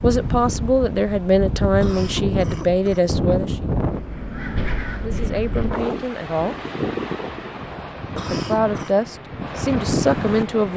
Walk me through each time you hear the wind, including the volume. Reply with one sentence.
The wind can be heard from 0.0 to 10.7 s, at a steady volume.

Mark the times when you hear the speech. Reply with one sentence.
The speech can be heard from 0.0 to 3.5 s, from 5.0 to 6.5 s and from 8.3 to 10.7 s.